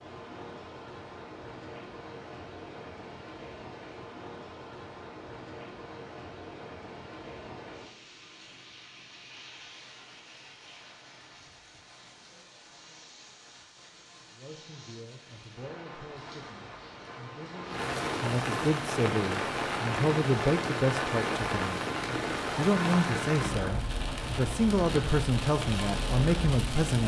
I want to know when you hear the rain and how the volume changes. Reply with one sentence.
The rain can be heard from 0.0 to 27.0 s, getting quieter then louder.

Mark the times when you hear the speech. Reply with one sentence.
You can hear the speech from 14.3 to 27.0 s.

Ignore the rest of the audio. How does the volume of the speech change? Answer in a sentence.
The volume of the speech goes up.